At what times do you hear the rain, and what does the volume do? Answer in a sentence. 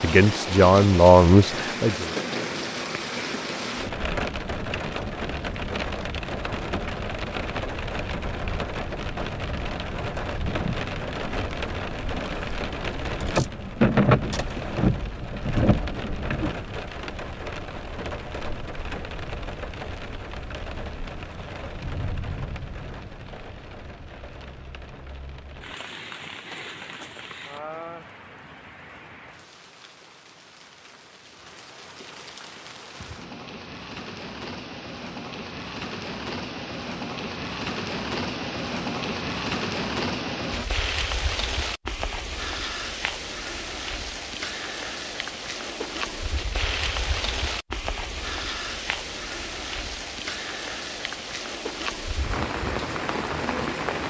The rain can be heard from 0.0 to 54.0 s, getting quieter then louder.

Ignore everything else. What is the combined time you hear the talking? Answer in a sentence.
You can hear the talking for 2 seconds altogether.